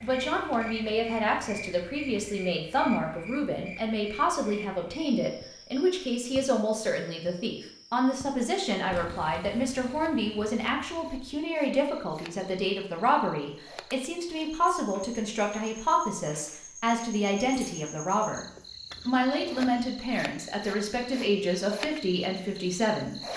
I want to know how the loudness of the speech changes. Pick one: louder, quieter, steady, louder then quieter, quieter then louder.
steady.